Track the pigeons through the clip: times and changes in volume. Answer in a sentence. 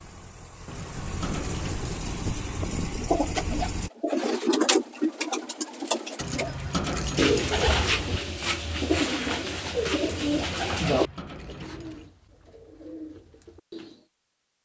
The pigeons can be heard from 3.0 to 14.1 s, getting quieter.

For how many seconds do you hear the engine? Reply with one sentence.
The engine can be heard for 4 seconds in total.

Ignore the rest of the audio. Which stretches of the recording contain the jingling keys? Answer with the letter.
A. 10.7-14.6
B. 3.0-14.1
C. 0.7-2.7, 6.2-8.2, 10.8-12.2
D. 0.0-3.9
C.